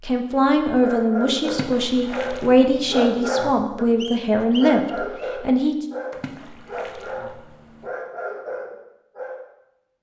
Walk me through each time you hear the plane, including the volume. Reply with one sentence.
The plane can't be heard in this clip.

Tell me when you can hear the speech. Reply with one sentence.
You can hear the speech from 0.0 to 5.8 s.